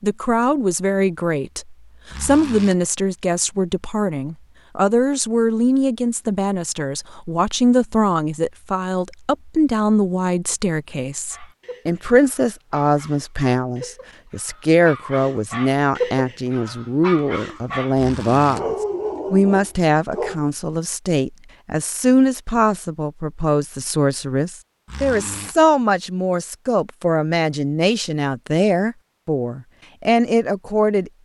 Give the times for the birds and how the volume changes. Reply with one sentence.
The birds can't be heard in this clip.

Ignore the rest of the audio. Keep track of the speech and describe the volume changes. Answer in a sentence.
The volume of the speech stays about the same.